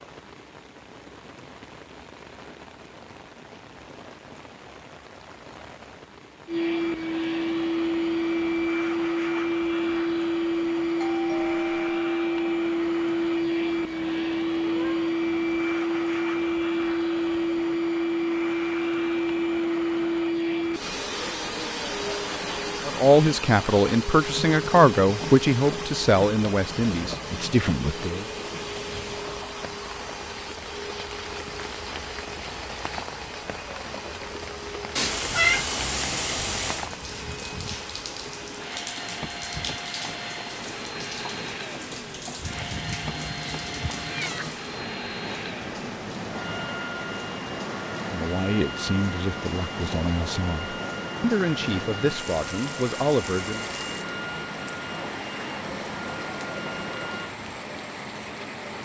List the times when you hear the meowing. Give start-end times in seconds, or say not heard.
14.2-15.2, 35.0-36.9, 42.5-44.5.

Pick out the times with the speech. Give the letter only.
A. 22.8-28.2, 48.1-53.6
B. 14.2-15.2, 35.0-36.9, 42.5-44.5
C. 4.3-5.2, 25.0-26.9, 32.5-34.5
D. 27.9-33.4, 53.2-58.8
A.